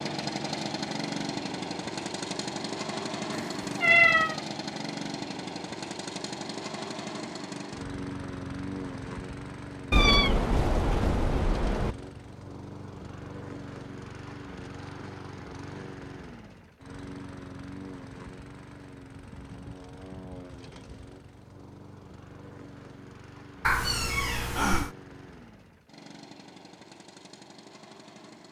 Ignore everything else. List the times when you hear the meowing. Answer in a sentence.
The meowing can be heard from 3.3 to 4.3 s, from 9.9 to 11.9 s and from 23.6 to 24.9 s.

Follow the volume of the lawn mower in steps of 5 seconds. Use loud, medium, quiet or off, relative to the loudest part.
loud, loud, medium, medium, quiet, quiet.